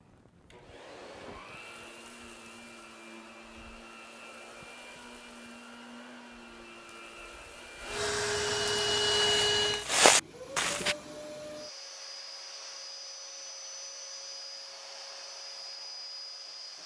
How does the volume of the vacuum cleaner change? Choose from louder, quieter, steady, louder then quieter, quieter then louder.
louder then quieter.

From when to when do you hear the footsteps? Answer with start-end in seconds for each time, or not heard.
9.2-10.9.